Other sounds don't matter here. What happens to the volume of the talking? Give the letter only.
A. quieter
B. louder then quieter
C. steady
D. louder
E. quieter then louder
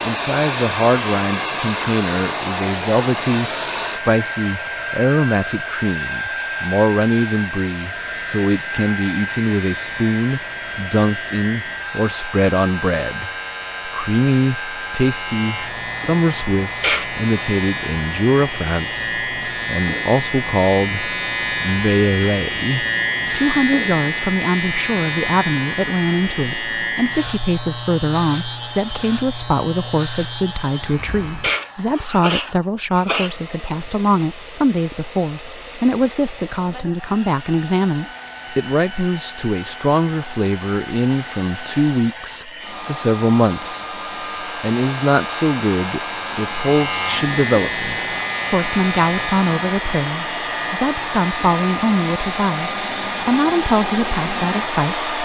C.